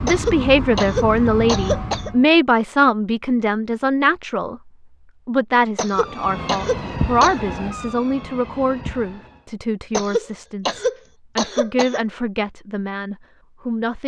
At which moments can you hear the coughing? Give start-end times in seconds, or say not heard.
0.1-2.1, 5.8-7.3, 9.9-12.0.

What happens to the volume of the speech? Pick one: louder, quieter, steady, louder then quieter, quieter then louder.
quieter.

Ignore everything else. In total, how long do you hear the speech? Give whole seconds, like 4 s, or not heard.
13 s.